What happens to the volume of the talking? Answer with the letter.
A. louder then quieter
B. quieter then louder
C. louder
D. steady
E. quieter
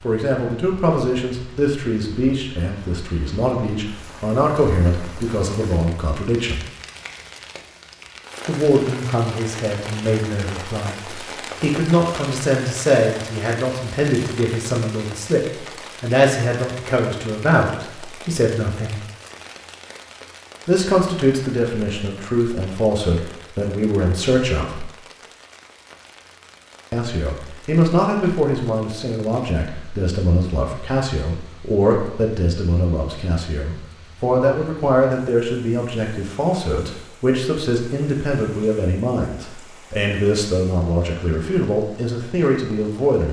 D.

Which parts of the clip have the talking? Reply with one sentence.
You can hear the talking from 0.0 to 6.7 s, from 8.4 to 19.0 s, from 20.6 to 24.9 s and from 26.9 to 43.2 s.